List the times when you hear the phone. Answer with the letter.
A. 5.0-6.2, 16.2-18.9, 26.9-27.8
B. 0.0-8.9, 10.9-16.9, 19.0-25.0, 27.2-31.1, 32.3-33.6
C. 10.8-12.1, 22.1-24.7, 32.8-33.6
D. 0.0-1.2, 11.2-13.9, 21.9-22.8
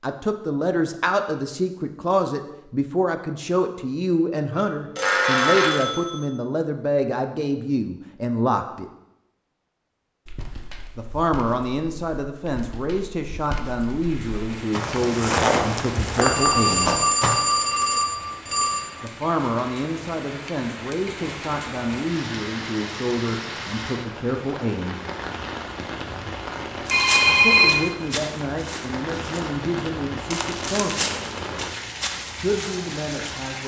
A.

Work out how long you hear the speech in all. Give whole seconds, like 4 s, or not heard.
26 s.